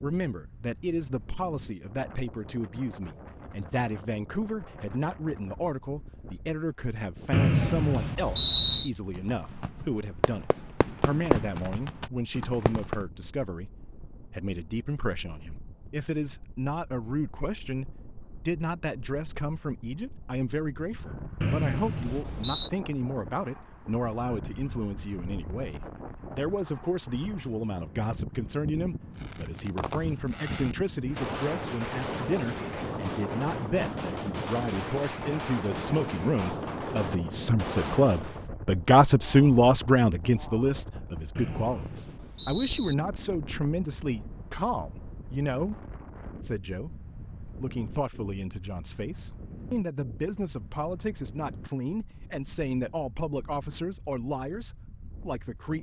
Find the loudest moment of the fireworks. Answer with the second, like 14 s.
11 s.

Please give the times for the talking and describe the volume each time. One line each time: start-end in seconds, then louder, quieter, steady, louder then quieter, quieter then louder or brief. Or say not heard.
0.0-55.7 louder then quieter.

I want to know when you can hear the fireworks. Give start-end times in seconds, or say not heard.
9.2-13.1, 29.1-38.5.